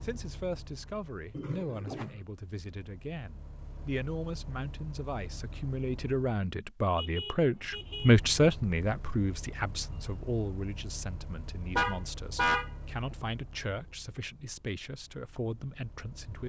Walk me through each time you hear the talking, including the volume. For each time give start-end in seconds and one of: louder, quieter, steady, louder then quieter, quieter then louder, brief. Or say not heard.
0.0-16.4 louder then quieter.